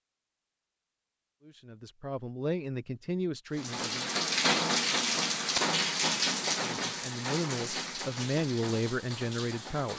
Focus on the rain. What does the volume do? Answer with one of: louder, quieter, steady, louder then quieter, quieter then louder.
quieter.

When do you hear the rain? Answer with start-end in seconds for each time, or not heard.
3.5-9.9.